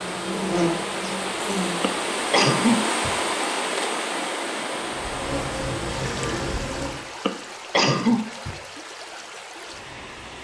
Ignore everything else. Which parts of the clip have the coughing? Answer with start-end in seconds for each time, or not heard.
1.8-3.1, 7.2-8.6.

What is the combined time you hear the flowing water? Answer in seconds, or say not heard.
10 s.